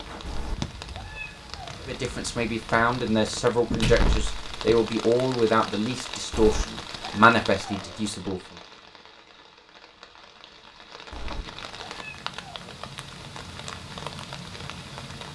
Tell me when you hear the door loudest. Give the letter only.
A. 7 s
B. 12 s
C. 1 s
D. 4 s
D.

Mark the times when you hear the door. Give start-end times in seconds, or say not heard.
3.7-4.7, 11.2-11.8.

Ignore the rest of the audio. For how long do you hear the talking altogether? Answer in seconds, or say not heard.
7 s.